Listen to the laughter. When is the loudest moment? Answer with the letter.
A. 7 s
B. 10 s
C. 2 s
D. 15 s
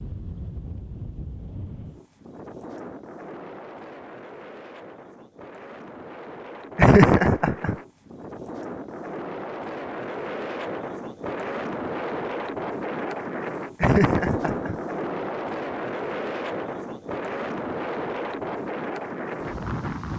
A.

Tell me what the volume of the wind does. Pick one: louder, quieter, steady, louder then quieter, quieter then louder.
louder.